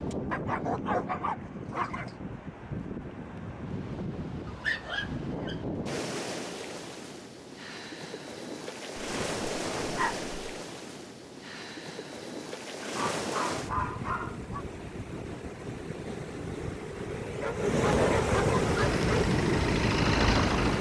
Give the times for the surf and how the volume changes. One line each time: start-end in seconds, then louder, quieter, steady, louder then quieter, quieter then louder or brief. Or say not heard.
0.0-20.7 louder.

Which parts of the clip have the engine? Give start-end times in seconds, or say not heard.
18.6-20.7.